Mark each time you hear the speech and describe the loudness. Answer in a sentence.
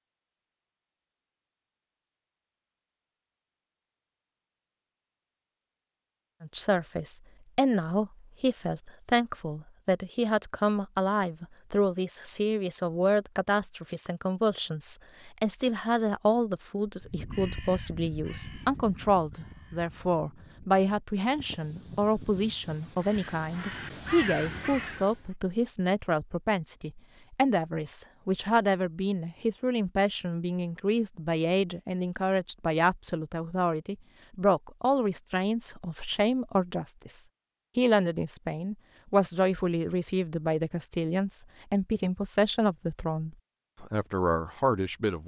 You can hear the speech from 6.4 to 45.2 s, at a steady volume.